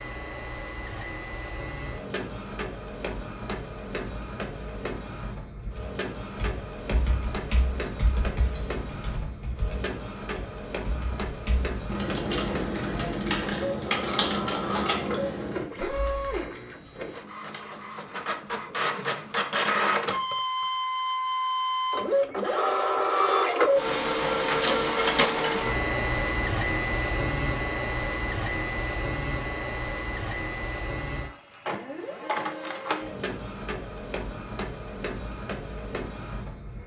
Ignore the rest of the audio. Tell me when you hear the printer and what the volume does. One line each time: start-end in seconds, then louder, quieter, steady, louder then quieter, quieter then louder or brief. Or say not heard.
0.0-36.8 louder then quieter.